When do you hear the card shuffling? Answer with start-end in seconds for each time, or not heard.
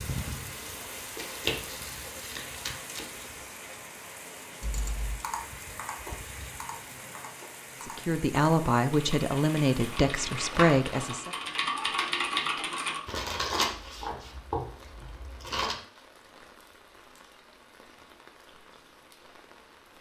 1.1-3.0, 13.1-15.8.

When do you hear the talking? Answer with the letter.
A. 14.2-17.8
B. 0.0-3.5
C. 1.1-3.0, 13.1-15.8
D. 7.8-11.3
D.